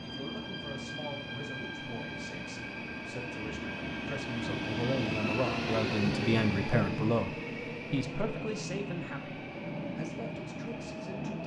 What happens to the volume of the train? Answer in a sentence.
The volume of the train goes up, then down.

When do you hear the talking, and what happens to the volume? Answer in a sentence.
The talking can be heard from 0.0 to 11.4 s, getting louder then quieter.